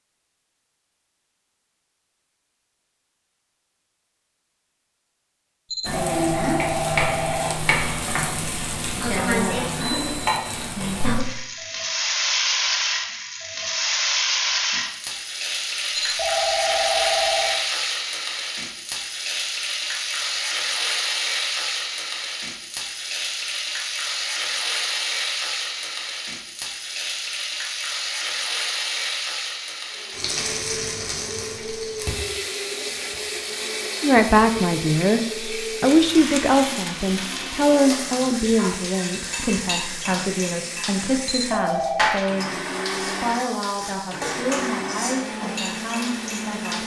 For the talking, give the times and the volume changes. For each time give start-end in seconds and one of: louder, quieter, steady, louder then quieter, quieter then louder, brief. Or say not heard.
34.0-46.8 quieter.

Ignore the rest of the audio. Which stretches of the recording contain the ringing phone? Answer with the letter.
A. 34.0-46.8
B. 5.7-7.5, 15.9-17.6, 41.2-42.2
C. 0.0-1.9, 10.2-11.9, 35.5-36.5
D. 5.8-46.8
B.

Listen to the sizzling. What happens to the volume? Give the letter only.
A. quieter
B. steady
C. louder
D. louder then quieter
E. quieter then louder
A.